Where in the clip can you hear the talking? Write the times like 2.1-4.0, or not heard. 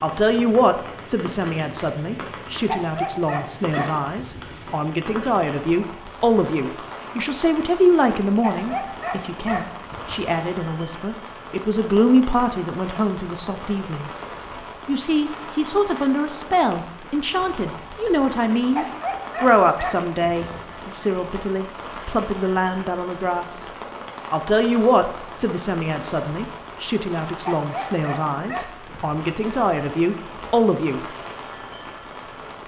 0.0-14.1, 14.8-23.7, 24.3-31.0.